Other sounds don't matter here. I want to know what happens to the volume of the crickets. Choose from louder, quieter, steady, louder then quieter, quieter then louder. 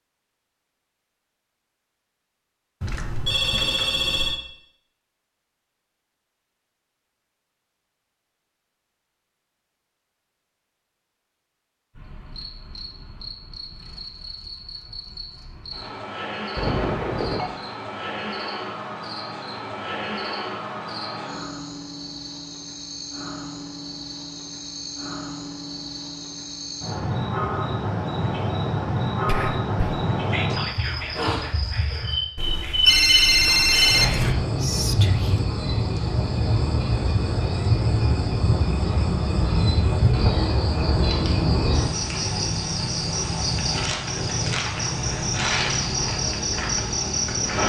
louder.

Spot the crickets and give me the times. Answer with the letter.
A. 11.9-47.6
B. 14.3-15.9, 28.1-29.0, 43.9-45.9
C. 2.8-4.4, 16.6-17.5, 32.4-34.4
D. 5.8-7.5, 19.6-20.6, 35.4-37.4
A.